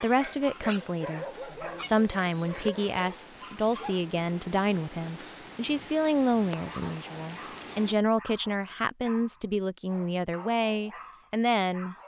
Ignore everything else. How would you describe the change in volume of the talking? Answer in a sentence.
The loudness of the talking stays about the same.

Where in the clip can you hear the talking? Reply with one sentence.
The talking can be heard from 0.0 to 11.9 s.